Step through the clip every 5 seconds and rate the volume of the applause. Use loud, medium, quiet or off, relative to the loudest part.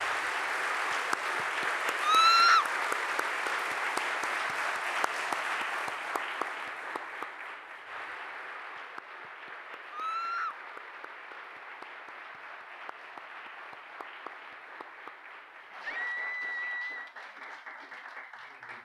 loud, medium, quiet, quiet.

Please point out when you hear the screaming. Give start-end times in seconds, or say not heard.
2.0-2.7, 9.9-10.6, 15.8-17.1.